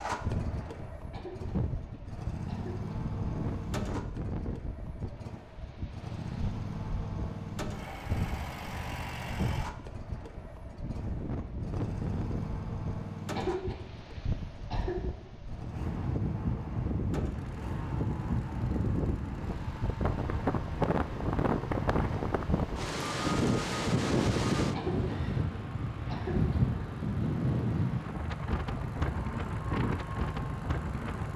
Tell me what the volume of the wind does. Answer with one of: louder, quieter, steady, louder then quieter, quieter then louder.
louder.